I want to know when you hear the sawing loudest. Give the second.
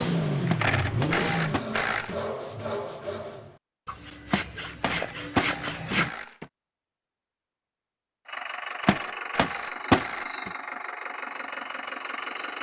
6 s.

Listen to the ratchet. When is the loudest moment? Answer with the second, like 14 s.
1 s.